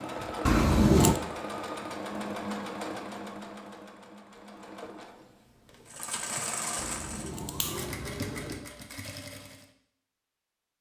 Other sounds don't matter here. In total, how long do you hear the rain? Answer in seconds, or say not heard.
not heard.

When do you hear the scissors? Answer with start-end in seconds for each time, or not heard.
0.5-1.2, 6.8-8.6.